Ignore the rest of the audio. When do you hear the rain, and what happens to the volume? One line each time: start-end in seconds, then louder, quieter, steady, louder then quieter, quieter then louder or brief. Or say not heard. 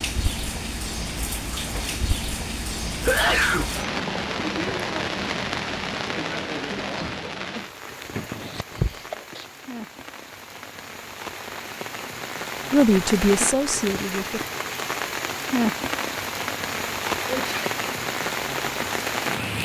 0.0-19.6 quieter then louder.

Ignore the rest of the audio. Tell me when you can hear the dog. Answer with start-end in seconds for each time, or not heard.
not heard.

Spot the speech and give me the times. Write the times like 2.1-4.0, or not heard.
12.7-14.4.